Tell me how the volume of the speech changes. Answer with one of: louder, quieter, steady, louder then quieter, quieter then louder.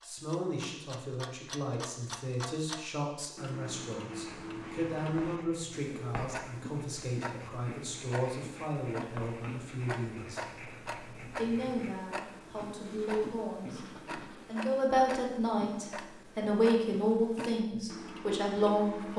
louder.